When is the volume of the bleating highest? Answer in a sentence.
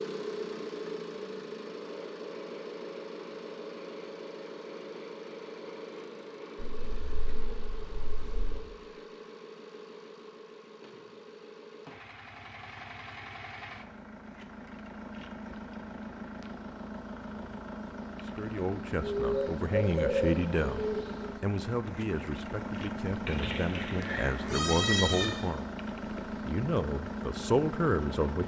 The volume of the bleating peaks at 25 seconds.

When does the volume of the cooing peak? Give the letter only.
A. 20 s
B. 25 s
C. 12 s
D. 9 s
A.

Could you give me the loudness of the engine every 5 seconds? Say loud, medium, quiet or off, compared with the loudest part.
loud, medium, medium, loud, loud, loud.